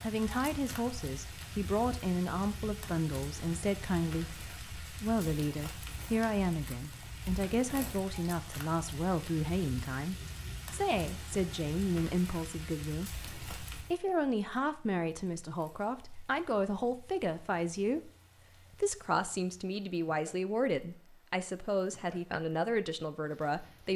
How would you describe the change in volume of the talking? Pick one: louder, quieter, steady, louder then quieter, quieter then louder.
steady.